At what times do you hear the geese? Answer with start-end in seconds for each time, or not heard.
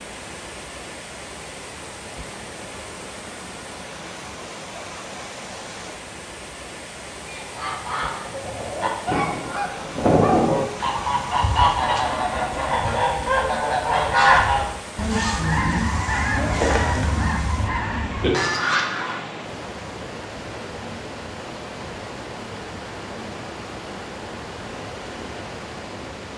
7.3-19.2.